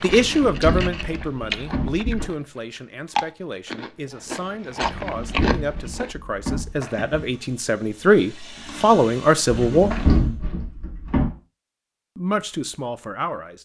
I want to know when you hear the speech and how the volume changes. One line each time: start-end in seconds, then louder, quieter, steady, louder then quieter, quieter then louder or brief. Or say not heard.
0.0-9.9 quieter then louder
12.2-13.5 brief.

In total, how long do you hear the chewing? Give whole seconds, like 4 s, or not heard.
6 s.